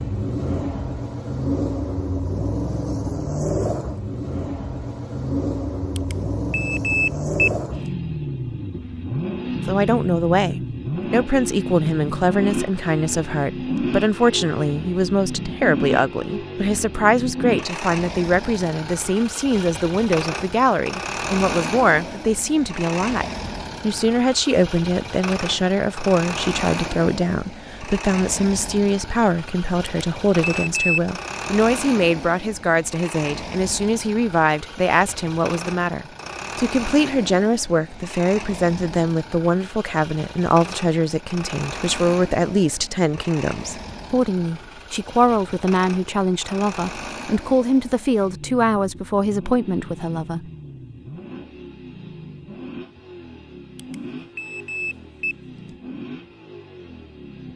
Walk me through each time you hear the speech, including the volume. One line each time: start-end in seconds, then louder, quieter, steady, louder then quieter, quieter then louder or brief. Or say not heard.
9.7-50.4 steady.